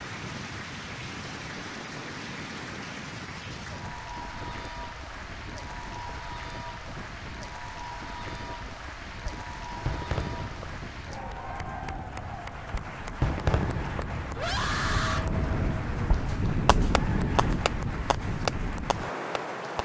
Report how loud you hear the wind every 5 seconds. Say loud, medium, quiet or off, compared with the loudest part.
medium, quiet, medium, loud.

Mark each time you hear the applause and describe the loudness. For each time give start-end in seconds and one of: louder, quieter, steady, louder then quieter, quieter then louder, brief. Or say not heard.
0.0-19.8 steady.